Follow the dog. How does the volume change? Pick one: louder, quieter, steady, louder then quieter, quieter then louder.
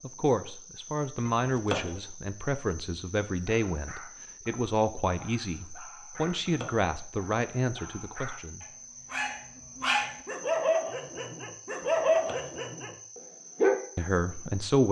louder.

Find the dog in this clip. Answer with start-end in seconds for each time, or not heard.
3.4-13.8.